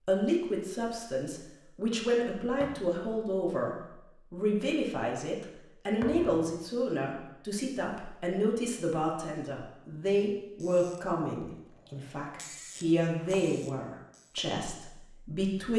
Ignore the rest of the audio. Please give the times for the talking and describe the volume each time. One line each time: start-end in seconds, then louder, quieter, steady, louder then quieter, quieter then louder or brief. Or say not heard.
0.1-15.7 steady.